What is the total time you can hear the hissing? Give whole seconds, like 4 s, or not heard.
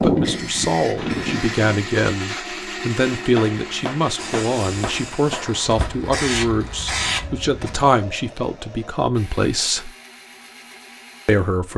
6 s.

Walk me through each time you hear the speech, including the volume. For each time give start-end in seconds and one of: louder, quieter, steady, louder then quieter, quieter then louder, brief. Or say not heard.
0.0-9.9 steady
11.2-11.7 brief.